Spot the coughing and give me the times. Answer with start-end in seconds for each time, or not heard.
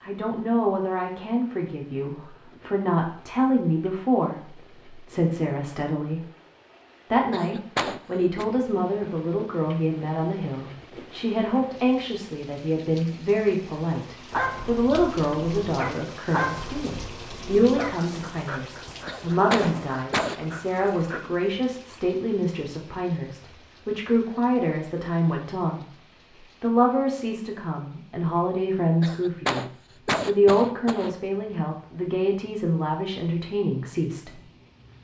7.3-8.4, 19.1-20.4, 29.0-31.1.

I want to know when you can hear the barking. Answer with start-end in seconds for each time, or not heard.
14.3-21.2.